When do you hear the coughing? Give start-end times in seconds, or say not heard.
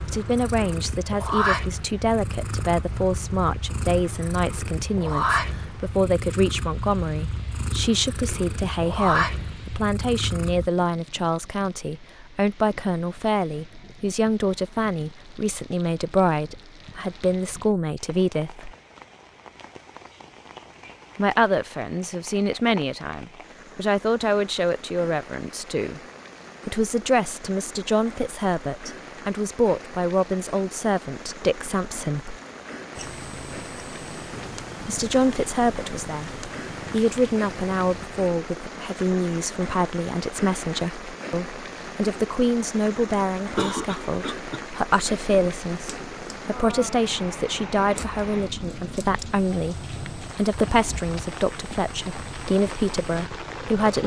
43.1-44.6.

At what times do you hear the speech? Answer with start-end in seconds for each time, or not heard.
0.1-18.7, 21.1-26.0, 26.6-32.4, 34.8-54.0.